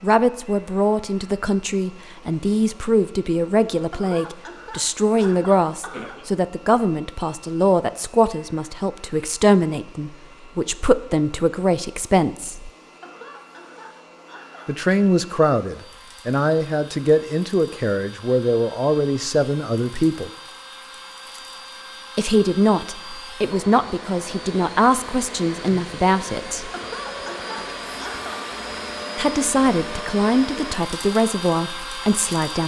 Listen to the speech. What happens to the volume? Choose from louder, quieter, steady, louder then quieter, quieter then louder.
steady.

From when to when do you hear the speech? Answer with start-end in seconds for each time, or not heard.
0.0-12.7, 14.7-20.3, 22.1-26.7, 29.1-32.6.